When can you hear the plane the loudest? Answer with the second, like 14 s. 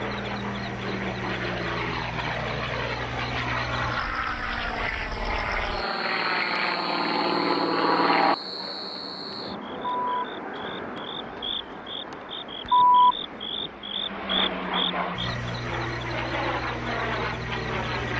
8 s.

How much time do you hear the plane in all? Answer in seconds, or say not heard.
18 s.